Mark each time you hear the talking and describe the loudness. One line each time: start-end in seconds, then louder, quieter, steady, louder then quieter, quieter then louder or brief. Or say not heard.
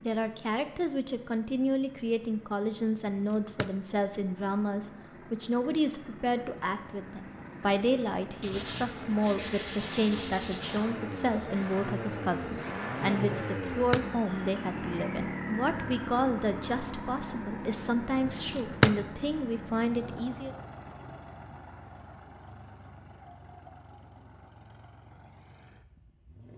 0.0-20.6 steady.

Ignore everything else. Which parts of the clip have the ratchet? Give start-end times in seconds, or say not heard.
not heard.